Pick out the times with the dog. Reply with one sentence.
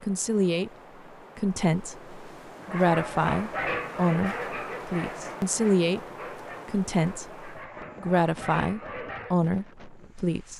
You can hear the dog from 2.6 to 9.3 s.